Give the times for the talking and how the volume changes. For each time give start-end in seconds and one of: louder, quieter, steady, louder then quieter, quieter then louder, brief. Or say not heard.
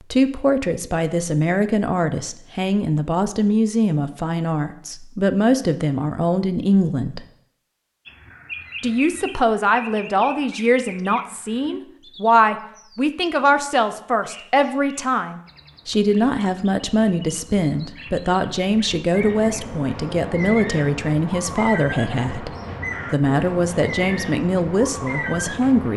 0.1-7.2 steady
8.8-25.9 steady.